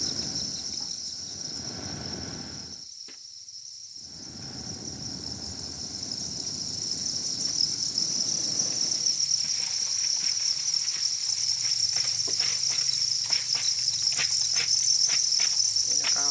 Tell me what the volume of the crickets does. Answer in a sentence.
The loudness of the crickets goes up.